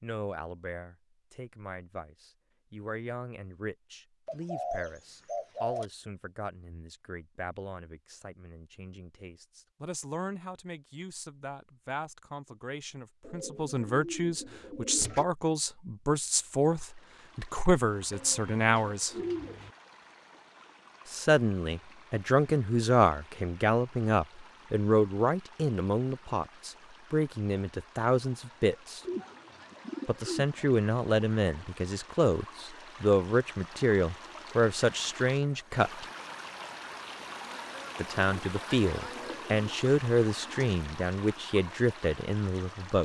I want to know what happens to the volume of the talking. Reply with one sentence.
The volume of the talking goes up.